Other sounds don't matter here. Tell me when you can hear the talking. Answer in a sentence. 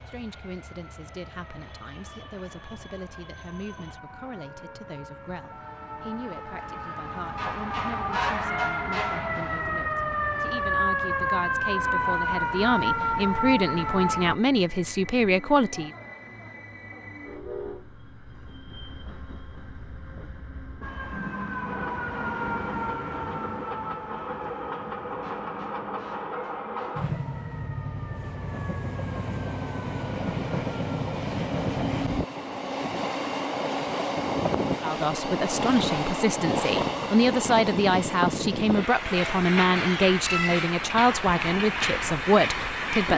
You can hear the talking from 0.0 to 15.9 s and from 34.8 to 43.1 s.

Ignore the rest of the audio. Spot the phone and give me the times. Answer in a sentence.
You can't hear the phone here.